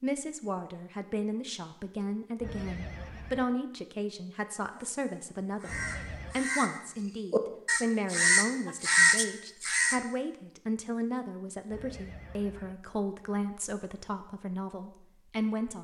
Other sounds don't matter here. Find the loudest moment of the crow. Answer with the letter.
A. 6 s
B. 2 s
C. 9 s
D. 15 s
C.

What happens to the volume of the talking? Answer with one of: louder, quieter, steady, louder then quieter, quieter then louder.
steady.